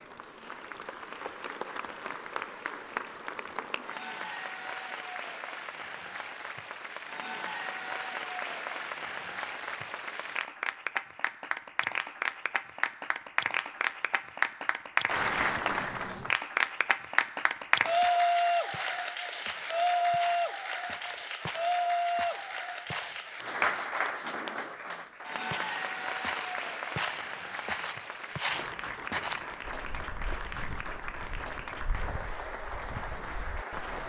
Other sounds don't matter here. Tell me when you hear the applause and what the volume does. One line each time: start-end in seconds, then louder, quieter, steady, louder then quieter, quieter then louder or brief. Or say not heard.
0.0-34.0 louder then quieter.